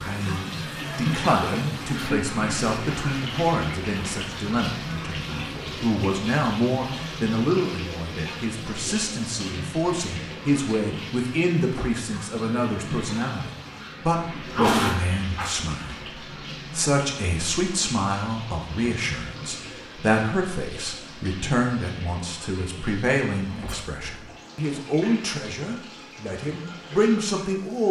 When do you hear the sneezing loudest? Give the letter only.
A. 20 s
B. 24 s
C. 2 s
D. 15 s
D.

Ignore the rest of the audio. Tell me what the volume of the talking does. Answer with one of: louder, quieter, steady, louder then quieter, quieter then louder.
steady.